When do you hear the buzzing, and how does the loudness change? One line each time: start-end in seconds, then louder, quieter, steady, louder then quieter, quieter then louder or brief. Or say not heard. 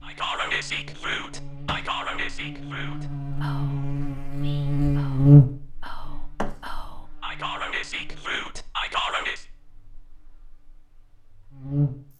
0.0-12.1 louder then quieter.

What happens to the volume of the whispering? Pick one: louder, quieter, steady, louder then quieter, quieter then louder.
quieter then louder.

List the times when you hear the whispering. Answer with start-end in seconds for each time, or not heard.
0.0-9.4.